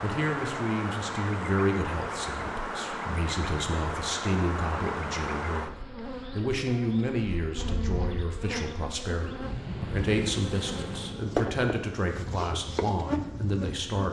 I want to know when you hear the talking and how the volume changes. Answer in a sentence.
The talking can be heard from 0.0 to 14.0 s, at a steady volume.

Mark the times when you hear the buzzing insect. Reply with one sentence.
The buzzing insect can be heard from 0.0 to 14.0 s.